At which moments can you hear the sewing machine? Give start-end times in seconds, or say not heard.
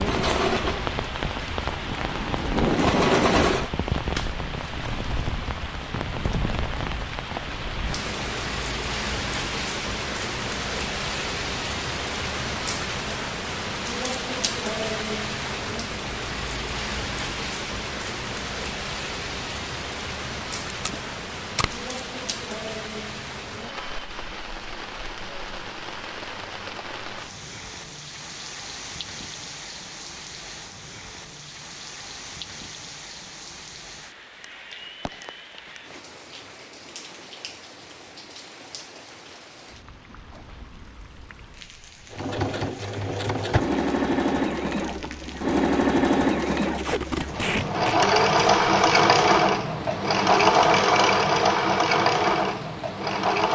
0.0-3.7, 42.1-53.4.